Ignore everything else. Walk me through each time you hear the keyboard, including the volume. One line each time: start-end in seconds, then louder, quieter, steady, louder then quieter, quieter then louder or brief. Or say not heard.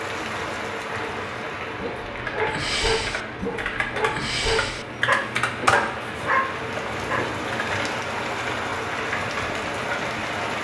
0.8-10.2 louder then quieter.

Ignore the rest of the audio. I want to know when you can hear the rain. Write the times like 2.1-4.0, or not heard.
0.0-10.5.